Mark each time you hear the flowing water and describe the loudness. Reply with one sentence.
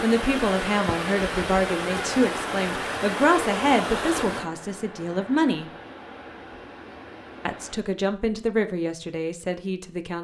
The flowing water can be heard from 0.0 to 7.8 s, getting quieter.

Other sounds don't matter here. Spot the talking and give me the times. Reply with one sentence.
The talking can be heard from 0.0 to 5.7 s and from 7.5 to 10.1 s.